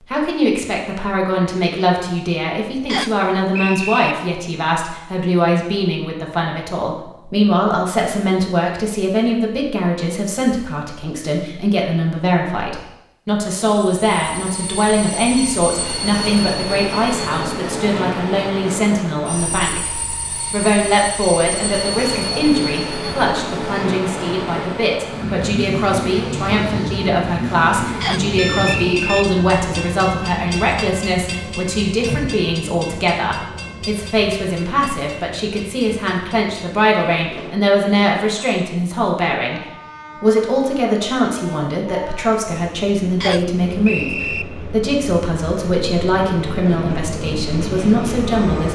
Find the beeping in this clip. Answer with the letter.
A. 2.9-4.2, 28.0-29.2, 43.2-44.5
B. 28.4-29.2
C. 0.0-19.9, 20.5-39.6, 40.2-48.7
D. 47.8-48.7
B.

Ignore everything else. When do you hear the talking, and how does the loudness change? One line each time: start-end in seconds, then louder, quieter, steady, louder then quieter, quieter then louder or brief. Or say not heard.
0.0-19.9 steady
20.5-39.6 steady
40.2-48.7 steady.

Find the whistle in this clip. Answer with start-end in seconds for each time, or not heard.
2.9-4.2, 28.0-29.2, 43.2-44.5.